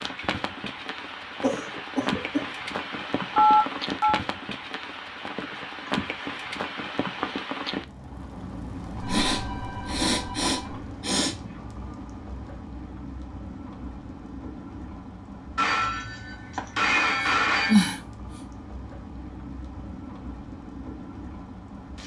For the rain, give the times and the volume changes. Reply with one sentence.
You can hear the rain from 0.0 to 22.0 s, getting quieter.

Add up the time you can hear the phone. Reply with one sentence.
The phone can be heard for 5 seconds in total.